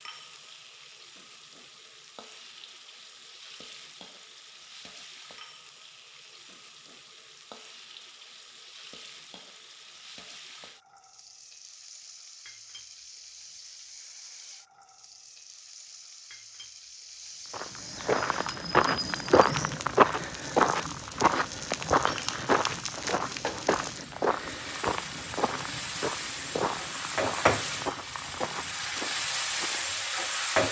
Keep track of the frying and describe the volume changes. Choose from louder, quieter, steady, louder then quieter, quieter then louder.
louder.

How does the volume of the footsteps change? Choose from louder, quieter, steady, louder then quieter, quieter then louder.
quieter.